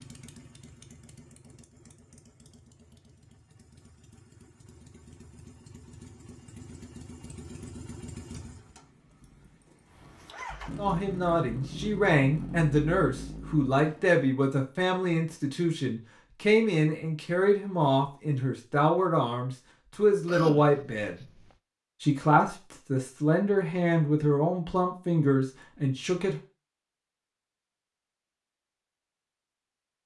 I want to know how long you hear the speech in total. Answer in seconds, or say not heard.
15 s.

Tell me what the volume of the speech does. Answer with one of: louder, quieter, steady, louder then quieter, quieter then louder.
steady.